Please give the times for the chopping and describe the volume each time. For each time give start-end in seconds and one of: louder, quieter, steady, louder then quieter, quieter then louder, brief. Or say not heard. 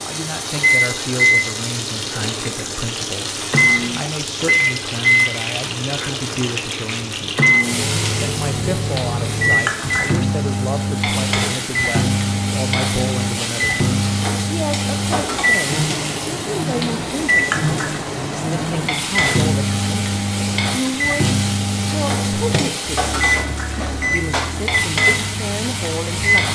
not heard.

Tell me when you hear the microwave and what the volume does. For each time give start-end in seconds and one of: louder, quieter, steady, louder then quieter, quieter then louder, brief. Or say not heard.
0.0-26.5 steady.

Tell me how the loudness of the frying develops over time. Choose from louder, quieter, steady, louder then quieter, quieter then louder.
steady.